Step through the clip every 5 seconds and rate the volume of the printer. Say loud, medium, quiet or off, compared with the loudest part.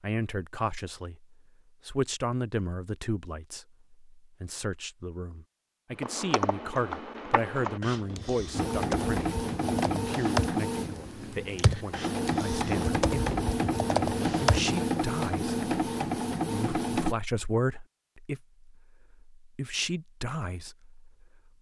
off, loud, loud, loud, off.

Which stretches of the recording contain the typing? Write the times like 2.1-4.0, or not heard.
6.0-14.7.